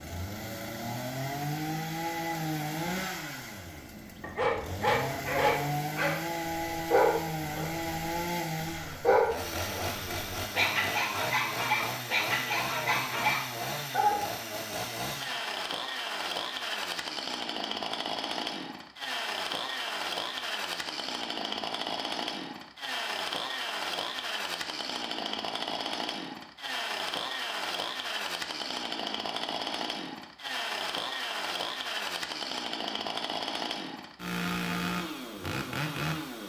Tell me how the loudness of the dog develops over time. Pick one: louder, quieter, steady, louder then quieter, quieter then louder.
steady.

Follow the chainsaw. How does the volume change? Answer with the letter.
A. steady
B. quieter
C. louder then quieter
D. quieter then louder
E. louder
A.